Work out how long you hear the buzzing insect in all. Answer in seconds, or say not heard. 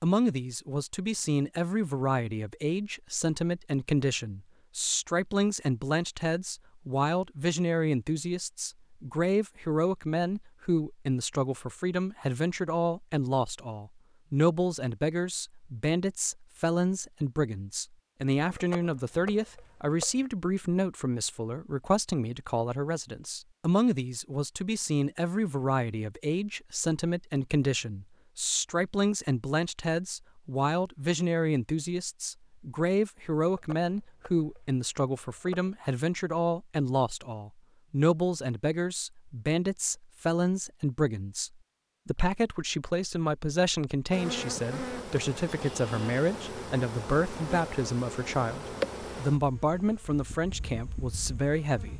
8 s.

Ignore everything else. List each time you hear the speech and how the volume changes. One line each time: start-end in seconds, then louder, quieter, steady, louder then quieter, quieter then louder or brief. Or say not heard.
0.0-51.9 steady.